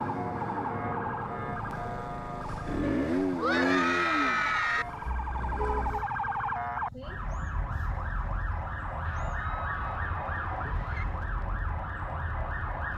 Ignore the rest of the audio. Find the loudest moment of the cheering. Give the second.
4 s.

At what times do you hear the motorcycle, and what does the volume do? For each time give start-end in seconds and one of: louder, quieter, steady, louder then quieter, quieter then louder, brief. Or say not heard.
0.0-12.9 louder then quieter.